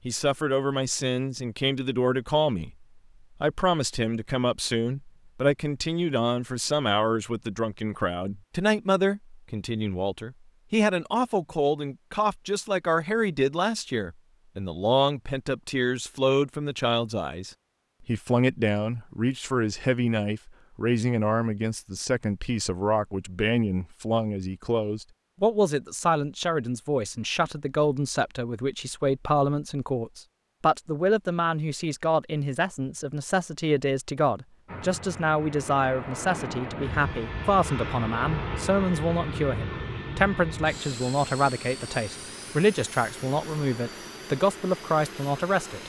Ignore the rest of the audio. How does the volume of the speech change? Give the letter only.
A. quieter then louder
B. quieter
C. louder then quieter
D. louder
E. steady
E.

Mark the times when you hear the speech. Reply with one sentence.
The speech can be heard from 0.1 to 45.8 s.